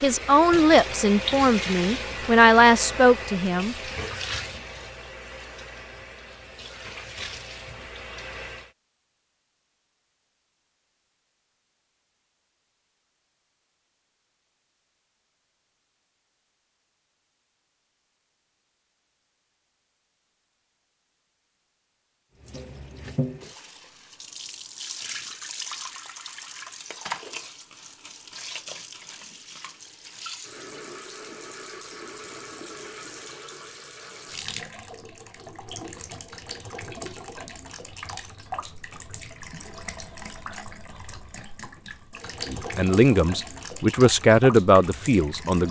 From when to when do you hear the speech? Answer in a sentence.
You can hear the speech from 0.0 to 3.8 s and from 42.5 to 45.6 s.